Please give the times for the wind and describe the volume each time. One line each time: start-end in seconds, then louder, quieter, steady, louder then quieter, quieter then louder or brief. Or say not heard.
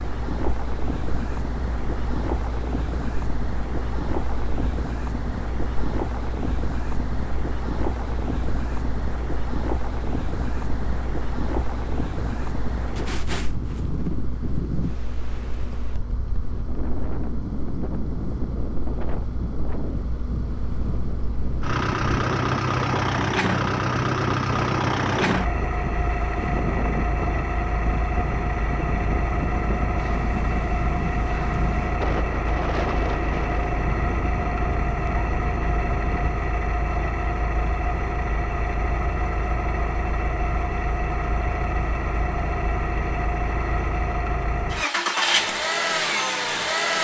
0.0-36.3 steady.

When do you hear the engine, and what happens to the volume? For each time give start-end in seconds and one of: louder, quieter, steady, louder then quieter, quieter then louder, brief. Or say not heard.
0.0-46.9 louder.